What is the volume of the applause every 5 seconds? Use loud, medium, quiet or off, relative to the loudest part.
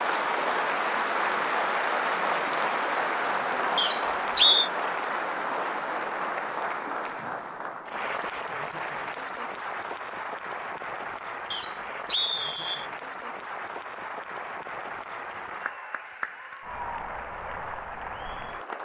loud, medium, medium, medium.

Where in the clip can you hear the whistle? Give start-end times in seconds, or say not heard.
3.8-4.7, 11.5-12.8.